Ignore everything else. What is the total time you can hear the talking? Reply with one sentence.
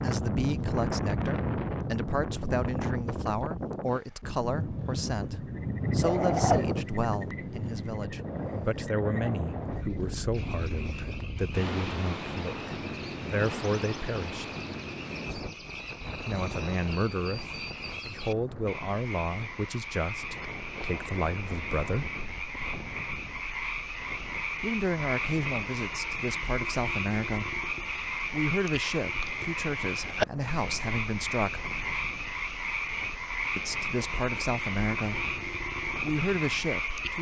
The talking can be heard for 30 seconds in total.